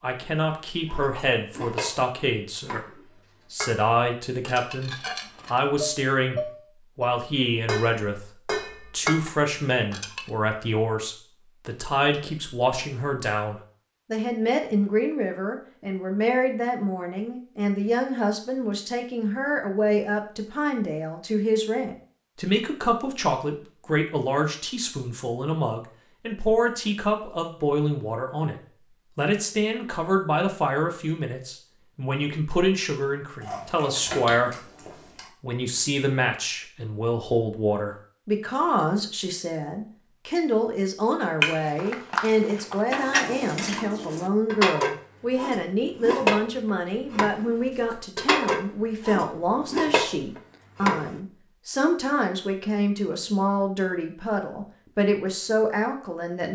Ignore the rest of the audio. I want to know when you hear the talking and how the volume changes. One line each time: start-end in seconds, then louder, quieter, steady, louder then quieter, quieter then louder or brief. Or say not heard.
0.0-34.5 steady
35.4-56.4 steady.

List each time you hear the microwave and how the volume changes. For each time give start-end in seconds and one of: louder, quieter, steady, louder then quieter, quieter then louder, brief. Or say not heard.
not heard.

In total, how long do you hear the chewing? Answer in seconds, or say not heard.
2 s.